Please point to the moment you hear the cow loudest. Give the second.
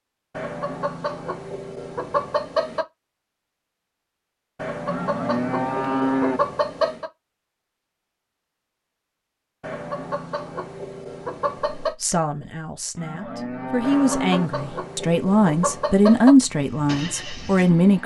6 s.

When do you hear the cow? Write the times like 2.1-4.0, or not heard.
4.8-6.4, 12.9-14.5.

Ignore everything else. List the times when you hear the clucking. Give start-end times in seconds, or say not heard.
0.3-2.9, 4.5-7.1, 9.6-11.9, 13.8-16.4.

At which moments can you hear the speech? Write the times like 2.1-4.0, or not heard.
11.8-18.0.